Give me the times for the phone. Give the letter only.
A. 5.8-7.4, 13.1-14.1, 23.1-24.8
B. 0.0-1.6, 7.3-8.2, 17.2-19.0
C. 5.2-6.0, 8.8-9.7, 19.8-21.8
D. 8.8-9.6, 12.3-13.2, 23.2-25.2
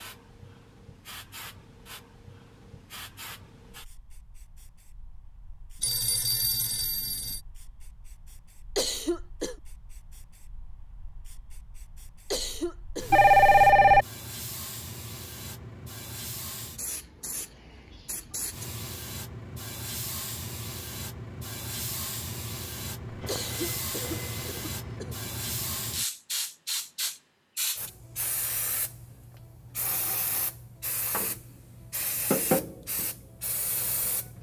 A.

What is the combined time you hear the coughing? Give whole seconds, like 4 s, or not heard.
4 s.